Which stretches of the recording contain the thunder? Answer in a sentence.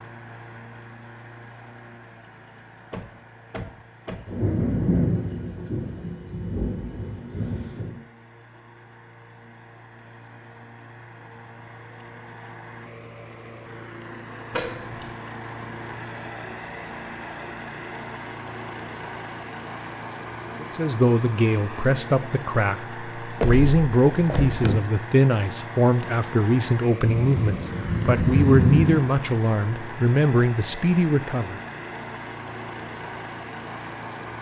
The thunder can be heard from 4.2 to 8.0 s and from 27.0 to 29.0 s.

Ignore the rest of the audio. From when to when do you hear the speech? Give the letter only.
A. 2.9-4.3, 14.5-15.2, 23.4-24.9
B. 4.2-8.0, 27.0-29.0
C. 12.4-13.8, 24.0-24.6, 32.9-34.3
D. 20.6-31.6
D.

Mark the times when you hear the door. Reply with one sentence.
The door can be heard from 2.9 to 4.3 s, from 14.5 to 15.2 s and from 23.4 to 24.9 s.